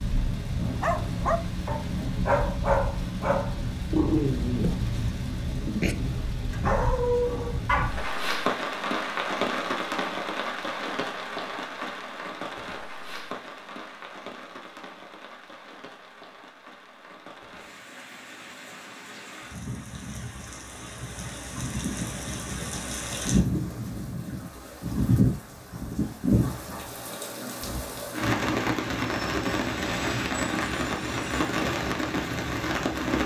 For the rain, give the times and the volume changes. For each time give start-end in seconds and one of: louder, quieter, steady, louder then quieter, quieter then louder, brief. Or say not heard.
0.0-33.2 quieter then louder.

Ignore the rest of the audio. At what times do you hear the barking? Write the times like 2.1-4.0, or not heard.
0.6-8.0.